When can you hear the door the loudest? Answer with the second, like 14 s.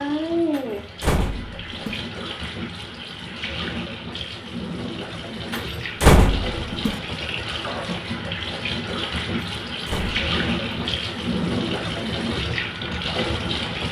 6 s.